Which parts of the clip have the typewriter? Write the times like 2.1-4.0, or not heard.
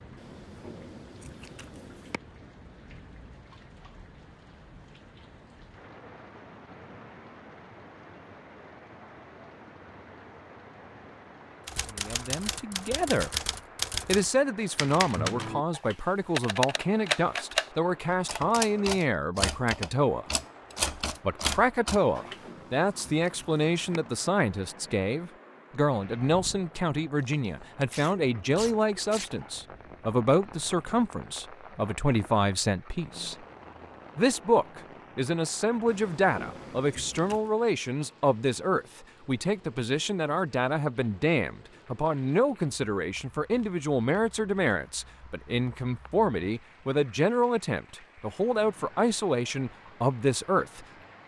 11.7-22.4.